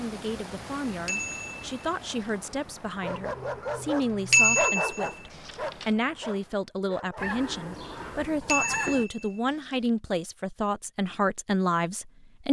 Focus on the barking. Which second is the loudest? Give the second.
5 s.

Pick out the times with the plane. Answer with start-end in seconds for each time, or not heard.
not heard.